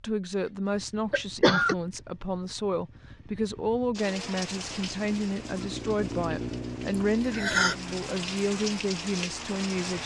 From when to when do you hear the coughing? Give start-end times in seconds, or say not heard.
1.1-1.8, 6.9-7.8.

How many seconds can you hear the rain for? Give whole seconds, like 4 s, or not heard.
6 s.